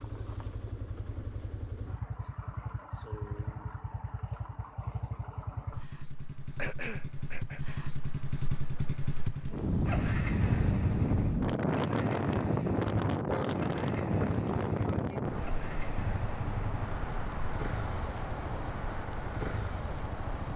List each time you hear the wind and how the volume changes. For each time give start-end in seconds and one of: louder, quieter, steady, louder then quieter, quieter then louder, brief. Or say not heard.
9.4-20.5 quieter.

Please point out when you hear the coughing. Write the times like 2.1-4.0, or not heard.
6.5-7.8.